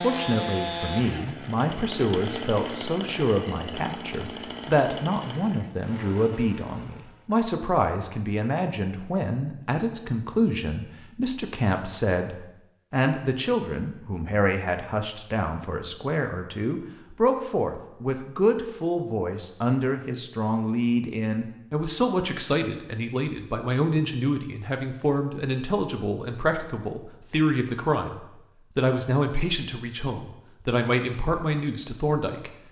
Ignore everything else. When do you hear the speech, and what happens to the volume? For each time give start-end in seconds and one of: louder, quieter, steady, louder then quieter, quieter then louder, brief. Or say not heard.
0.0-32.5 steady.